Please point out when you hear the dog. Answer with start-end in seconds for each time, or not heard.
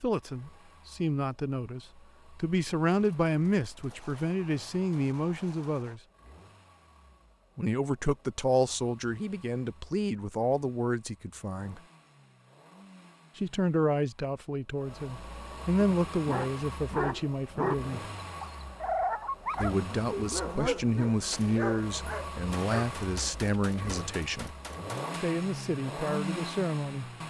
15.8-22.9.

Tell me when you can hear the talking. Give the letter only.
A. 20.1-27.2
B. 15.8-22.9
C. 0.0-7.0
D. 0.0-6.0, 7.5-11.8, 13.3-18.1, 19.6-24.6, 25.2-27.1
D.